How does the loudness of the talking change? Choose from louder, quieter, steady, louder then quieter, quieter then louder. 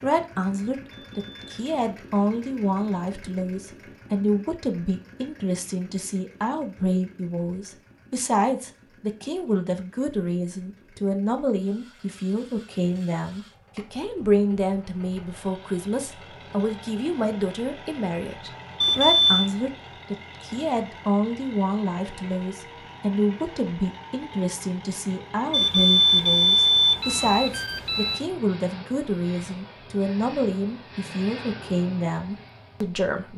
steady.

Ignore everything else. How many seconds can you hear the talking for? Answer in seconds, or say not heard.
33 s.